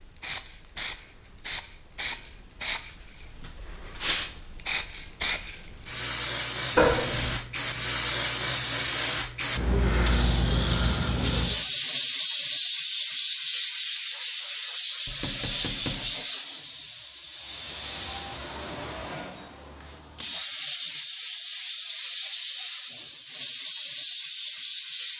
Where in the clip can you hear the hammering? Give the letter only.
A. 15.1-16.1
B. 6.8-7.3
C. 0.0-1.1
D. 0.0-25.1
A.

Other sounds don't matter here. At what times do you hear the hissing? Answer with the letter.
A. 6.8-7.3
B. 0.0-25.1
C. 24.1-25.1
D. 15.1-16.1
B.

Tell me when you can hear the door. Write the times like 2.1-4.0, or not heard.
6.8-7.3.